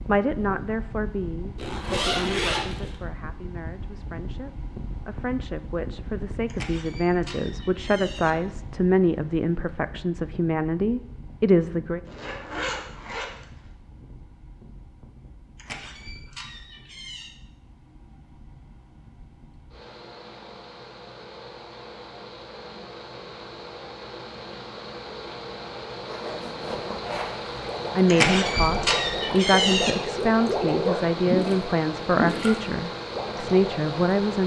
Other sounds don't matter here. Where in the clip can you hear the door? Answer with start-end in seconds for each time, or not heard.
6.5-8.3, 15.6-17.4, 28.1-29.9.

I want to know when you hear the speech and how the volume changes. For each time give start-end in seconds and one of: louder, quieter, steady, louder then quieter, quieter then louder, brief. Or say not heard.
0.1-12.0 quieter then louder
27.9-34.4 steady.